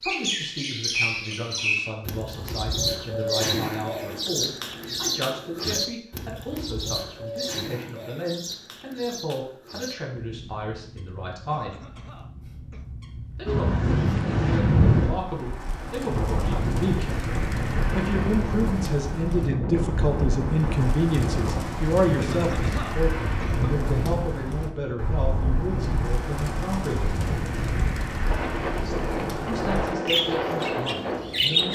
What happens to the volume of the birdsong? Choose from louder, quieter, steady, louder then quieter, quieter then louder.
quieter then louder.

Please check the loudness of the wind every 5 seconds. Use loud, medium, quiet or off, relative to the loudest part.
off, off, loud, medium, medium, medium, medium.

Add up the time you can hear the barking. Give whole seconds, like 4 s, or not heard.
not heard.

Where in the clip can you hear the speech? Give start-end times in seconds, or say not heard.
0.0-11.8, 13.3-17.1, 17.9-27.2, 29.4-31.7.